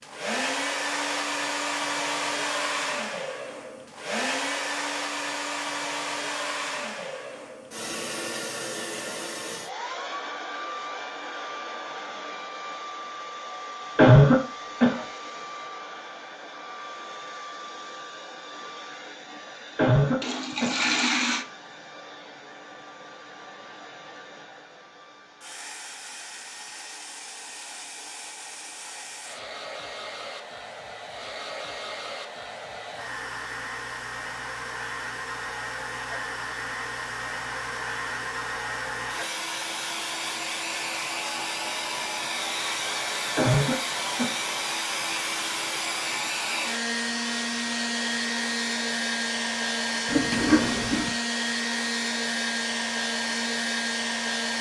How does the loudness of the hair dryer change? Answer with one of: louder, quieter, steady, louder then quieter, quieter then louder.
quieter then louder.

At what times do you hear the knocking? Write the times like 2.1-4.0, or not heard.
not heard.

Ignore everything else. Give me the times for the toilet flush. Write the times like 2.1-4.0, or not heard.
20.2-21.4, 50.0-51.1.